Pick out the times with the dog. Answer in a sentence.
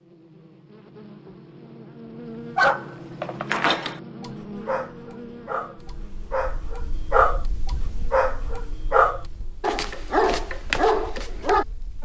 The dog can be heard from 2.5 to 11.7 s.